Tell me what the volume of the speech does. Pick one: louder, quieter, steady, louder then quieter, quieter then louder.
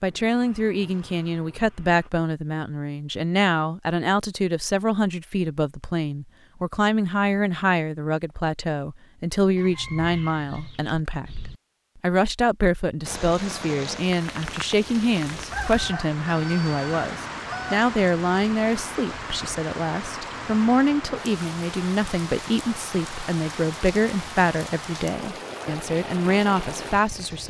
steady.